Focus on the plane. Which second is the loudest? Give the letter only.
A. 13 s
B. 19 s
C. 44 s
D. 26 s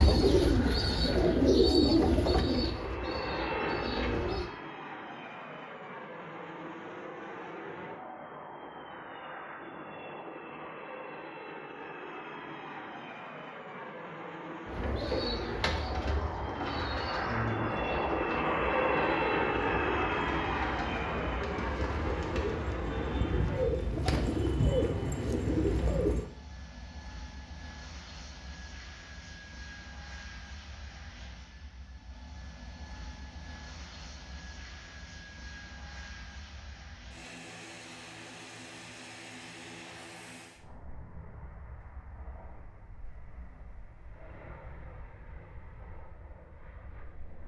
B.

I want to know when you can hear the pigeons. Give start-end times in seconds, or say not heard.
0.0-4.5, 14.7-26.3.